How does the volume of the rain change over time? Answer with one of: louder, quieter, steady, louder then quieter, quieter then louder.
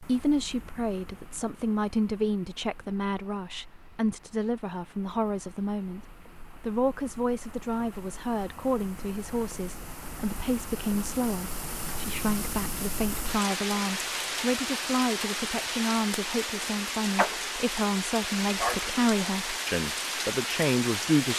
louder.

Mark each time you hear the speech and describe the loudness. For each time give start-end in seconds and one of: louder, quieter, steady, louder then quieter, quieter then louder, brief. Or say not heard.
0.0-21.3 steady.